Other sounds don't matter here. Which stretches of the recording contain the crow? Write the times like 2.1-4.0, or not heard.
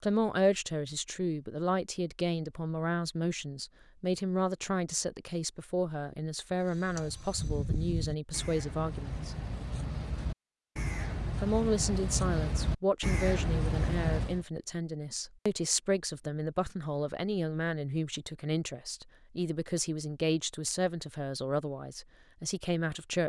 6.7-14.4.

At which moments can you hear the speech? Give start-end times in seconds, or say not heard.
0.0-9.4, 11.3-23.2.